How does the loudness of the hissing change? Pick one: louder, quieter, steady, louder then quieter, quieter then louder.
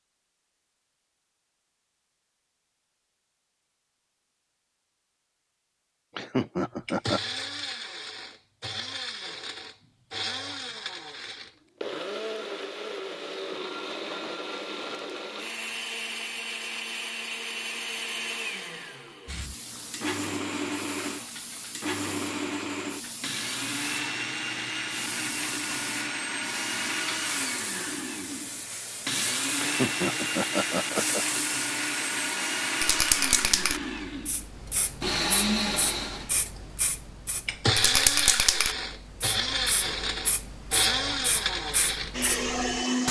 louder.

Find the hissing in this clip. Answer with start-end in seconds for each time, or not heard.
19.2-43.0.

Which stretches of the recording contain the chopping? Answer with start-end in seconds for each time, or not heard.
not heard.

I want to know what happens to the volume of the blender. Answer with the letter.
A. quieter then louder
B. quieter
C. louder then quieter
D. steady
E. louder
E.